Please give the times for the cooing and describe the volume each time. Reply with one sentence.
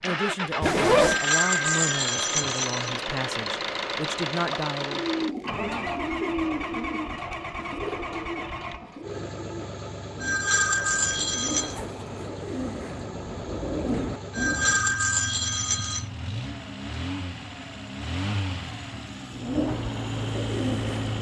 The cooing can be heard from 4.8 to 15.0 s, getting quieter then louder; and briefly from 19.3 to 21.1 s.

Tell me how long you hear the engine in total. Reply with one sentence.
You can hear the engine for 21 seconds altogether.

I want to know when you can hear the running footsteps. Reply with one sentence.
The running footsteps can't be heard in this clip.